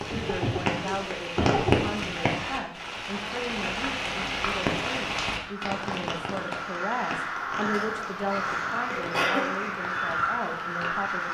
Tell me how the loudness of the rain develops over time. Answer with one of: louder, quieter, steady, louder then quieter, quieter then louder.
quieter.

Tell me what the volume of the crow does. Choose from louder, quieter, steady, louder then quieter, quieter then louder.
louder.